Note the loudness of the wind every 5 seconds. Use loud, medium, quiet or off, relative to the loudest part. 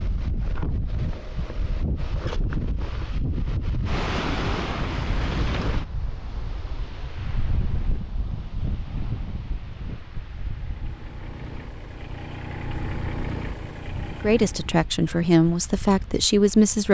loud, loud, quiet, quiet.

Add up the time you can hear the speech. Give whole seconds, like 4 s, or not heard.
3 s.